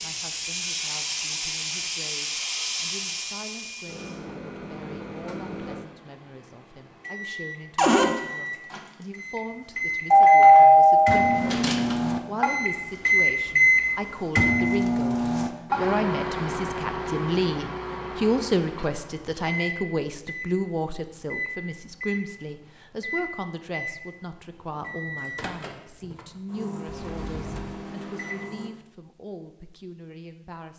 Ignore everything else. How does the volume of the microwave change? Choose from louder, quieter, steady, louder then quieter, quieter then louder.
louder then quieter.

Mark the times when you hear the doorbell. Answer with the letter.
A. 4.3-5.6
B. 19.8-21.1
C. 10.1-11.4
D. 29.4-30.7
C.